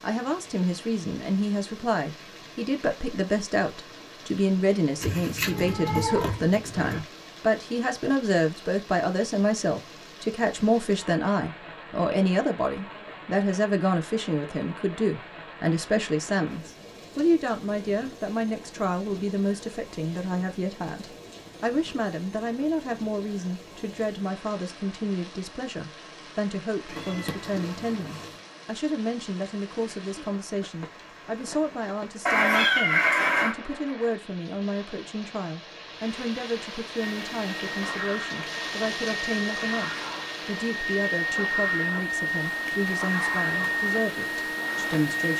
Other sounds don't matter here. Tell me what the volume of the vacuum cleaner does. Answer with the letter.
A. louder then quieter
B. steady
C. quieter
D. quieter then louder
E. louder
E.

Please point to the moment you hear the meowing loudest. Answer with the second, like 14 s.
33 s.